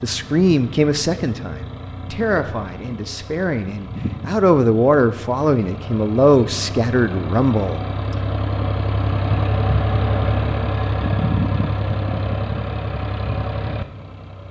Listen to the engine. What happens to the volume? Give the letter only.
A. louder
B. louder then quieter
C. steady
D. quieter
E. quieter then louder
A.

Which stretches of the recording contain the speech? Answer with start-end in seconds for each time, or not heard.
0.0-8.2.